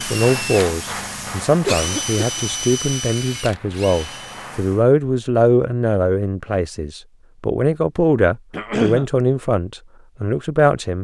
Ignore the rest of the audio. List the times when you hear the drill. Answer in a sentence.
The drill can be heard from 0.0 to 4.6 s.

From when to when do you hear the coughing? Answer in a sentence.
You can hear the coughing from 1.6 to 2.4 s and from 8.5 to 9.1 s.